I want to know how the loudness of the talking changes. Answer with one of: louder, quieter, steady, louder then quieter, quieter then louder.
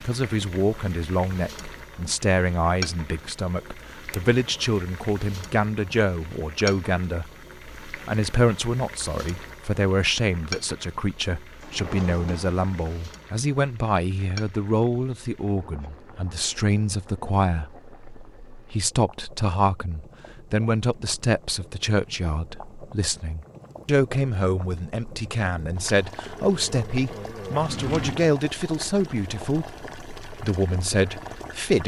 steady.